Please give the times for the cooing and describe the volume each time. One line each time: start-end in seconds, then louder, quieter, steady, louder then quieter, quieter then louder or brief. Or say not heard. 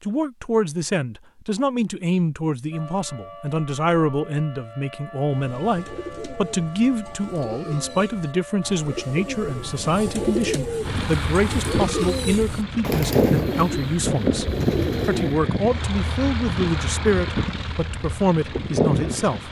5.3-15.4 louder.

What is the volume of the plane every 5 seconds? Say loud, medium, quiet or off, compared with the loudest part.
off, off, loud, loud.